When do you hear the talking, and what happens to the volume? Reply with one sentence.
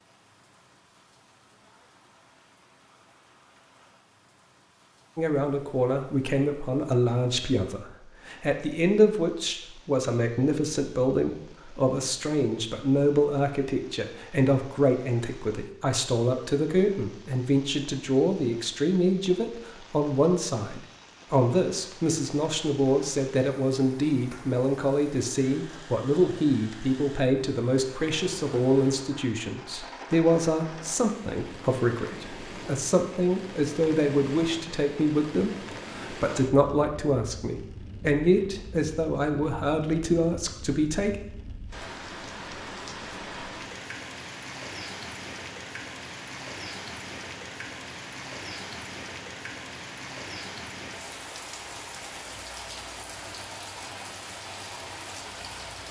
The talking can be heard from 5.2 to 41.1 s, at a steady volume.